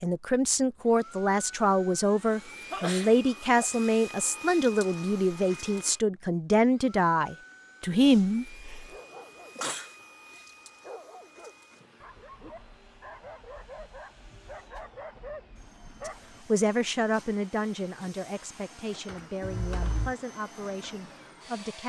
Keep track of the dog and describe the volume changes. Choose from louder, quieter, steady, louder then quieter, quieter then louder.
louder.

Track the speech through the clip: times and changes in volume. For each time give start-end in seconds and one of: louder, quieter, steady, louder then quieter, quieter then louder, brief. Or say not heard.
0.0-8.7 steady
16.1-21.8 quieter.